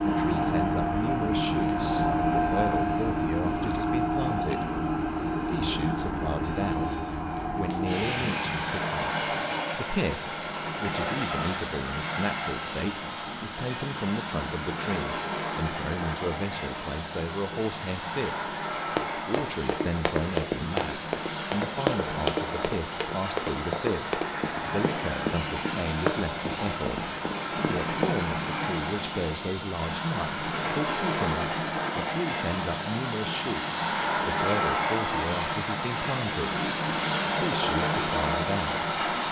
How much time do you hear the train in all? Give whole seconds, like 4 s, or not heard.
39 s.